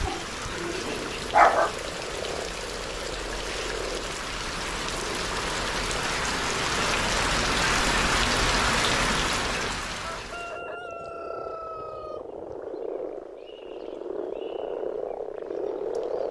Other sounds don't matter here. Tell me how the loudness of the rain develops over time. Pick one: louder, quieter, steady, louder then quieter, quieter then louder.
louder.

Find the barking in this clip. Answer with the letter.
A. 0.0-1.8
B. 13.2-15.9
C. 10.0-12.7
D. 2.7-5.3
A.